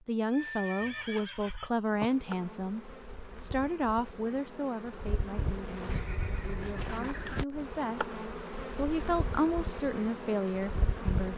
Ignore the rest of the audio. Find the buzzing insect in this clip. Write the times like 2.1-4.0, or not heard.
1.9-11.3.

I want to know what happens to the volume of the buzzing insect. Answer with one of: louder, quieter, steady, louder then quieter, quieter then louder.
louder.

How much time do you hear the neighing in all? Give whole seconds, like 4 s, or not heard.
3 s.